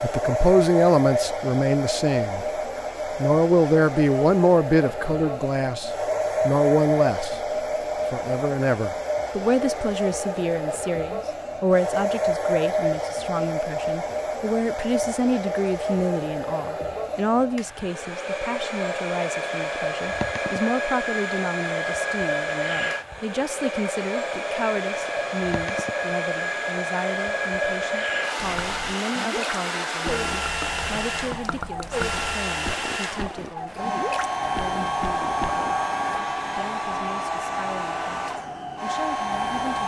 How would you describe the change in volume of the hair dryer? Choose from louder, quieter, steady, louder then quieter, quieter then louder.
steady.